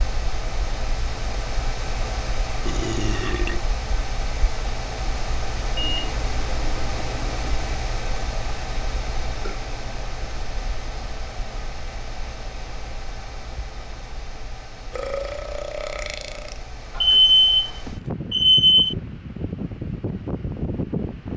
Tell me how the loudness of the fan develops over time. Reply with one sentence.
The loudness of the fan goes down, then up.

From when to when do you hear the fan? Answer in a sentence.
The fan can be heard from 0.0 to 21.3 s.